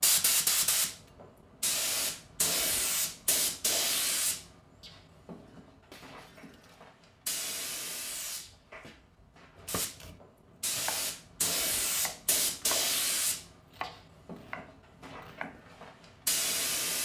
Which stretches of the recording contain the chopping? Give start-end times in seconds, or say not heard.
9.7-12.8, 13.7-15.6.